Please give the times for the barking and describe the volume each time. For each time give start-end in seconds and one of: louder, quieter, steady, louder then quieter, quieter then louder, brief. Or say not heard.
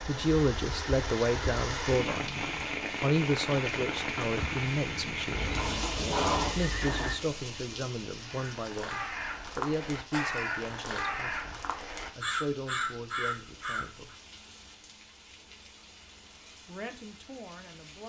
not heard.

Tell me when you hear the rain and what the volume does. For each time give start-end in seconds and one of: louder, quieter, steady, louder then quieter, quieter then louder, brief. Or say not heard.
0.0-18.0 quieter.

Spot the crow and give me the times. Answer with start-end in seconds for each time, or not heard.
8.2-14.2.